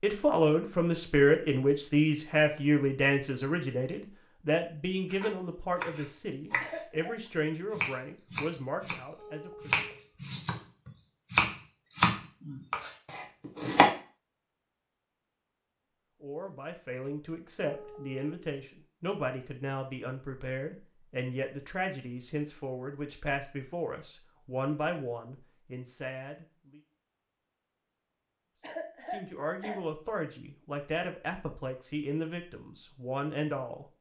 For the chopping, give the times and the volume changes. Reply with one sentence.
The chopping can be heard briefly from 5.1 to 6.8 s; briefly from 7.7 to 9.0 s; and from 9.6 to 13.9 s, getting louder then quieter.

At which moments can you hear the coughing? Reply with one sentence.
The coughing can be heard from 6.6 to 7.2 s and from 28.6 to 29.8 s.